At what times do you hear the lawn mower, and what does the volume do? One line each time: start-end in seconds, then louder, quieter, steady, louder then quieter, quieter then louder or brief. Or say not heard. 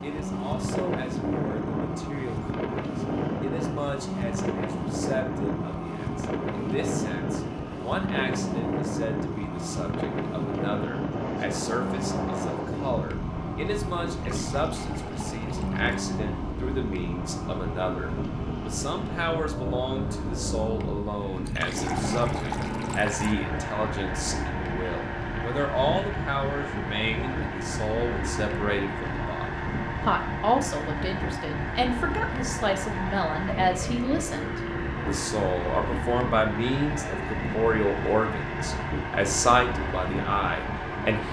0.0-41.2 steady.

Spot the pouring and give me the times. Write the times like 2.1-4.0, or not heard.
14.1-16.0, 21.4-23.4.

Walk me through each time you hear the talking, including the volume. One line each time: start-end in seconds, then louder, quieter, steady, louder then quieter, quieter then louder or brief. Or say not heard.
0.0-41.2 louder.